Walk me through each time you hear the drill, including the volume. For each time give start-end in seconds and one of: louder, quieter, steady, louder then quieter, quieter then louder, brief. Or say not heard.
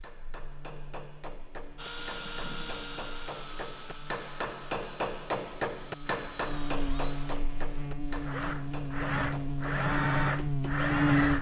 1.8-11.3 quieter then louder.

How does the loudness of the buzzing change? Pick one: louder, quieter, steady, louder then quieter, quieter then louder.
louder.